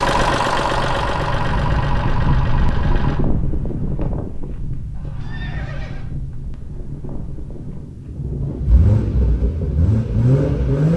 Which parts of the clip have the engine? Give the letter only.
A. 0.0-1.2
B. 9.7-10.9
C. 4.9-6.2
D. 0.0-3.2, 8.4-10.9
D.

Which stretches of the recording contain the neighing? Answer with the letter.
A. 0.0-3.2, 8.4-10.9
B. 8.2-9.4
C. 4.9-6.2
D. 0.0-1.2
C.